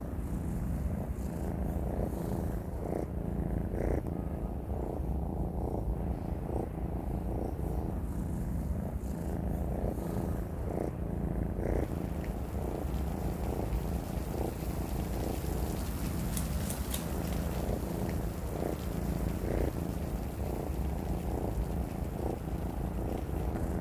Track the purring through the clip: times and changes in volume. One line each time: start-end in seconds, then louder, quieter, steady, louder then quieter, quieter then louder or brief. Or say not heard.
0.0-23.7 steady.